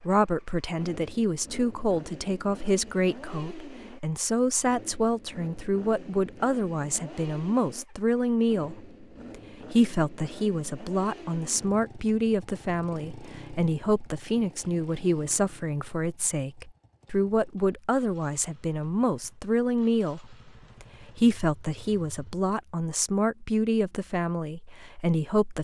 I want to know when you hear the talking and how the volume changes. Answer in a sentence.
You can hear the talking from 0.0 to 25.5 s, at a steady volume.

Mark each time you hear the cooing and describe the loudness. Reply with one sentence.
The cooing can't be heard in this clip.